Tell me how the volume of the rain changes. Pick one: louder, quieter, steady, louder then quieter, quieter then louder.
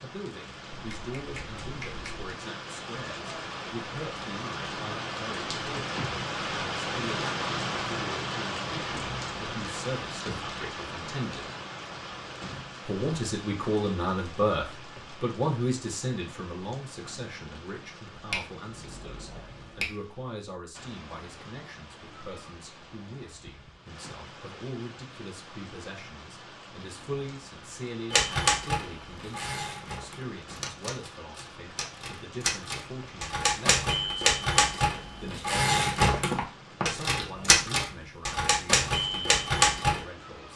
quieter.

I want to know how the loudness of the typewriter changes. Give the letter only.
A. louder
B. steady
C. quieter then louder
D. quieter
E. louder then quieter
A.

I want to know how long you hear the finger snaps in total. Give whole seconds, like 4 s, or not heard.
4 s.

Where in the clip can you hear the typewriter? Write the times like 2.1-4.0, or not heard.
28.1-40.0.